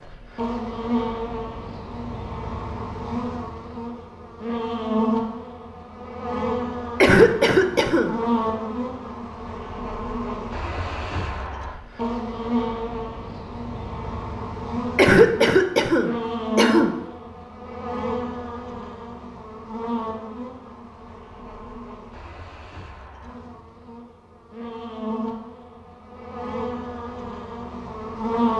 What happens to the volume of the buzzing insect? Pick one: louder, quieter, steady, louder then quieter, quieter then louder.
quieter.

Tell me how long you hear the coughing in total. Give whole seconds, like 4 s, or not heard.
3 s.